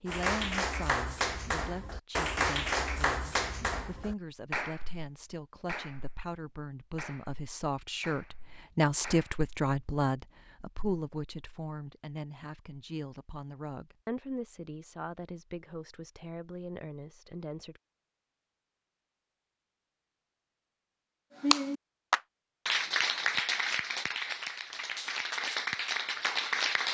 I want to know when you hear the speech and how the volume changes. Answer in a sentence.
The speech can be heard from 0.0 to 17.8 s, getting louder then quieter.